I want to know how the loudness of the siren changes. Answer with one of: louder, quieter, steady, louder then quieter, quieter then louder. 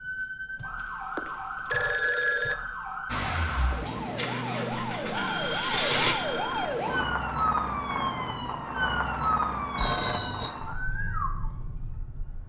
louder then quieter.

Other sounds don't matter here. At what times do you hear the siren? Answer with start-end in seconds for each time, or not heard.
0.0-12.4.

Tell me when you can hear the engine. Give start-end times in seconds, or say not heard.
3.1-6.2.